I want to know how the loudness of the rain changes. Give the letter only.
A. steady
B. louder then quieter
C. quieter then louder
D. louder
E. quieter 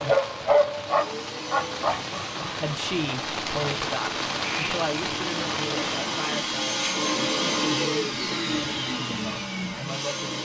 D.